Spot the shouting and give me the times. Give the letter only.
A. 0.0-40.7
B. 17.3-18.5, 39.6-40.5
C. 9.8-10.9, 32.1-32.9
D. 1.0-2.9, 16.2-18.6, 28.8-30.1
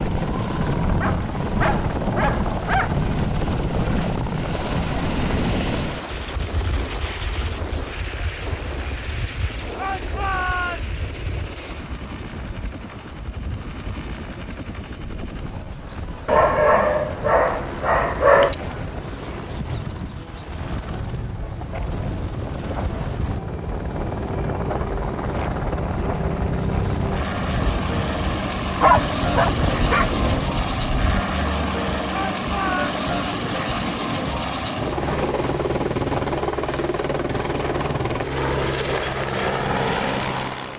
C.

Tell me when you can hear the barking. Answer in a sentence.
The barking can be heard from 1.0 to 2.9 s, from 16.2 to 18.6 s and from 28.8 to 30.1 s.